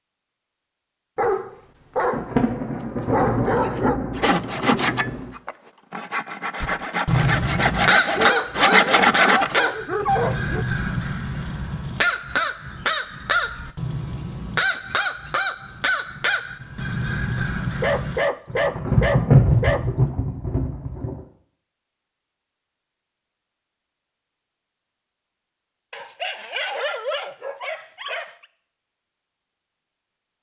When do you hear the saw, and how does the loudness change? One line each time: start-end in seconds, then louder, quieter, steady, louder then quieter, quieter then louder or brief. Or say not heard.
4.2-9.7 quieter then louder.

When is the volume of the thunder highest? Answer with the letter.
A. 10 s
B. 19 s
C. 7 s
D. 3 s
B.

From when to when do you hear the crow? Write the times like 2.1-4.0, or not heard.
6.6-18.2.